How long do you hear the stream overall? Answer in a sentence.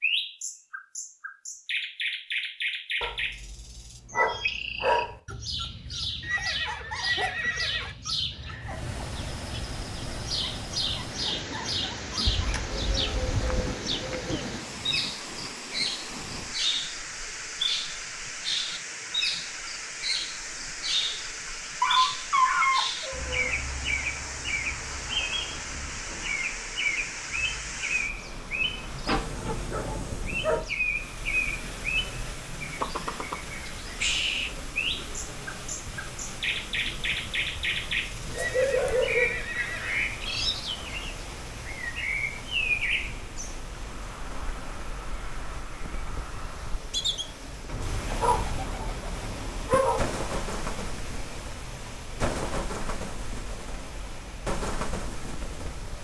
You can hear the stream for 47 seconds altogether.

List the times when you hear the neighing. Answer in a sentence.
You can hear the neighing from 6.2 to 8.0 s and from 38.3 to 40.0 s.